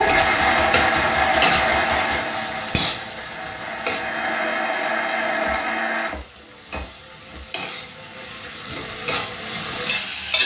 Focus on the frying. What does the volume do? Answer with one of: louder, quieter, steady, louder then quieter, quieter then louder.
quieter then louder.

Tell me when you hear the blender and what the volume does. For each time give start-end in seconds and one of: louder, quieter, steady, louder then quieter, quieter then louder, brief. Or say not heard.
0.0-6.2 quieter then louder.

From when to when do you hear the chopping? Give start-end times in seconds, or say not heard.
0.1-2.2, 5.5-7.5.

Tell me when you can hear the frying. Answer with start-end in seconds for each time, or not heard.
0.0-10.4.